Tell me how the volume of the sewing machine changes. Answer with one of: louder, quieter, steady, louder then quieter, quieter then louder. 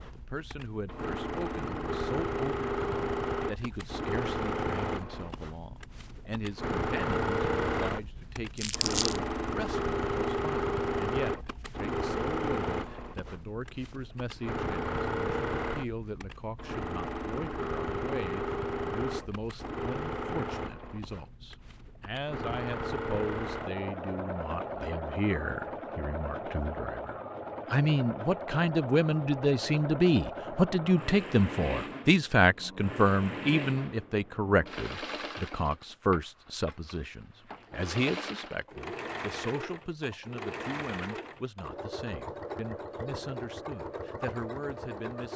quieter.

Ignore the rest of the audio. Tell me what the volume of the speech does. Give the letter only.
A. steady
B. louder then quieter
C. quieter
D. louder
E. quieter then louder
B.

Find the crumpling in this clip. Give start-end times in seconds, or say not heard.
8.6-9.2.